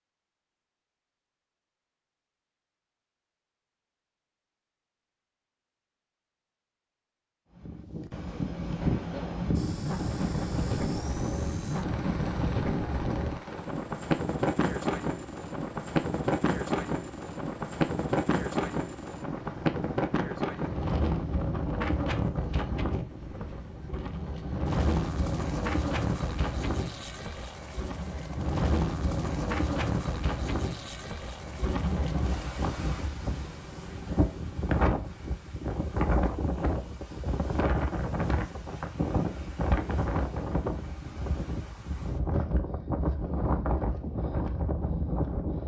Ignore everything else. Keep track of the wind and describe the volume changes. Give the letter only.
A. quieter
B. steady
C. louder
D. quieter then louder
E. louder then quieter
B.